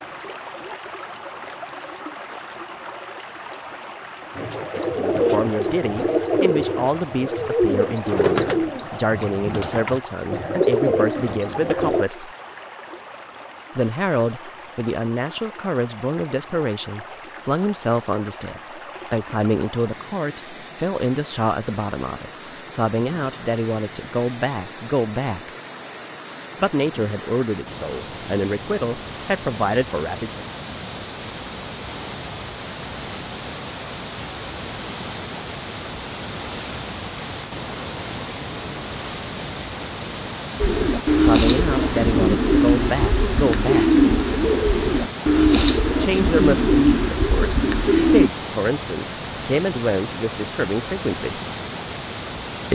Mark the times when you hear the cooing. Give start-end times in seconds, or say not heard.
4.3-12.1, 40.6-48.3.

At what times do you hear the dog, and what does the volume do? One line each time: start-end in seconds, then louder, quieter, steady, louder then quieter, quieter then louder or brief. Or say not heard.
not heard.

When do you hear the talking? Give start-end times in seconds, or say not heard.
5.0-12.3, 13.8-25.5, 26.6-30.4, 41.1-44.0, 46.0-51.4.